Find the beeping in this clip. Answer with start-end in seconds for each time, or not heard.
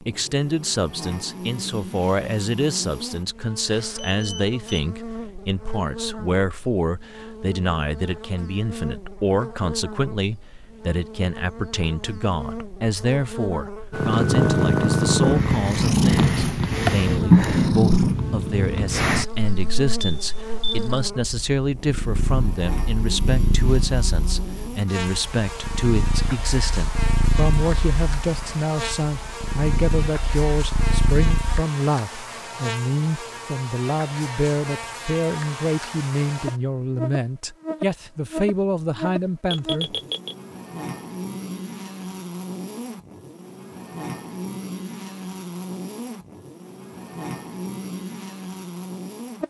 3.6-4.8, 20.0-20.9, 39.5-40.4.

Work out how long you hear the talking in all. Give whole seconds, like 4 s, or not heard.
40 s.